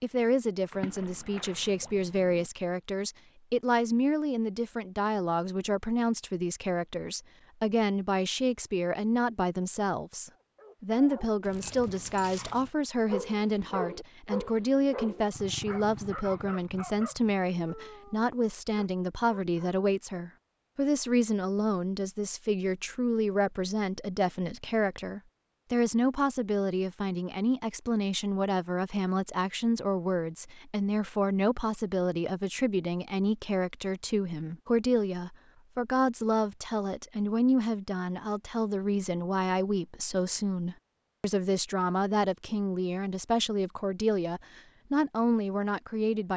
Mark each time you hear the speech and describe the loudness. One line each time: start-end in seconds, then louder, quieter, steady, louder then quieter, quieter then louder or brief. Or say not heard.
0.0-46.3 steady.